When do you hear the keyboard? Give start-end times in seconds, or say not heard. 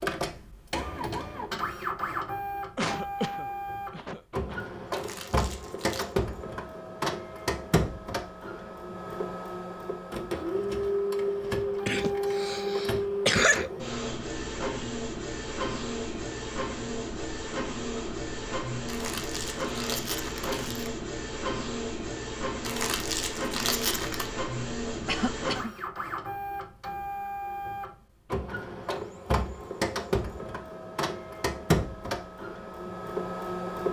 not heard.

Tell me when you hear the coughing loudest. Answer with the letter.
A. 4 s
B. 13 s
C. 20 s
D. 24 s
B.